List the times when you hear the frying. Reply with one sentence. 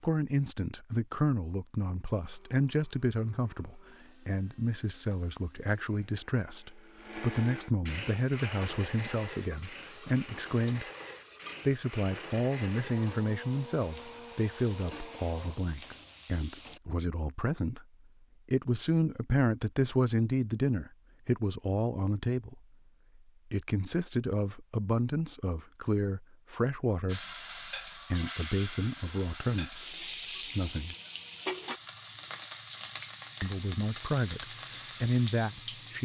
You can hear the frying from 8.1 to 16.8 s and from 27.1 to 36.0 s.